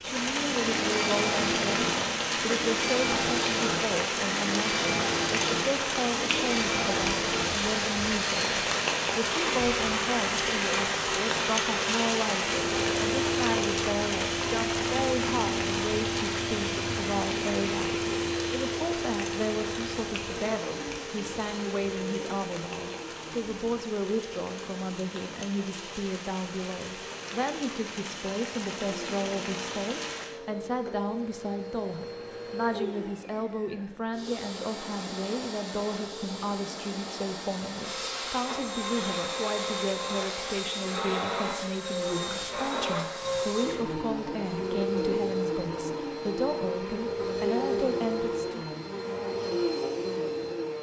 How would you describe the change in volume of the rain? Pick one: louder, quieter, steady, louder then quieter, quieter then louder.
quieter.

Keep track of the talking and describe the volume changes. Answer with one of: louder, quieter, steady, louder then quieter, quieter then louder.
steady.